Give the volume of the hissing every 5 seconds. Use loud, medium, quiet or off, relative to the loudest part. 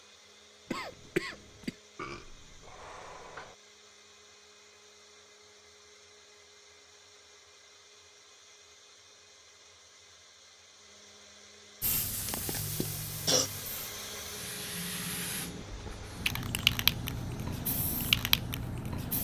off, off, medium, loud.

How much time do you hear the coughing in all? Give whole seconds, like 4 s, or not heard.
2 s.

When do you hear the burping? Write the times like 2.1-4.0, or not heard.
1.9-3.5.